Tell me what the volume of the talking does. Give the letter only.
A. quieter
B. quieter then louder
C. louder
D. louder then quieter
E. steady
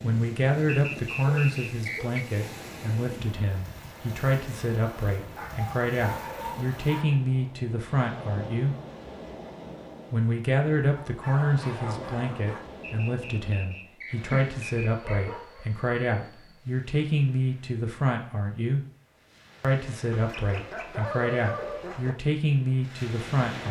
E.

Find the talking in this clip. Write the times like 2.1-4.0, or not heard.
0.0-8.8, 10.1-18.8, 19.6-23.6.